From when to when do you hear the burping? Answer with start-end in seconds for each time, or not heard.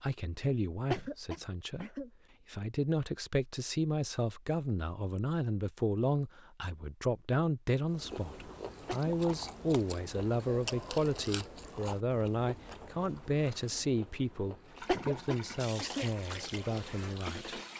not heard.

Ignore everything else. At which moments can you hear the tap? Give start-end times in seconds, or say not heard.
14.7-17.7.